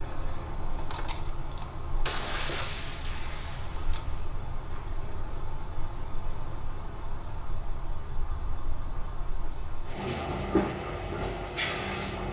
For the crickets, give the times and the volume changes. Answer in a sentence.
You can hear the crickets from 0.0 to 12.2 s, at a steady volume.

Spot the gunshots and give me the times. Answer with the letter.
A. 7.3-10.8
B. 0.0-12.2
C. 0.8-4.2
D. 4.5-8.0
C.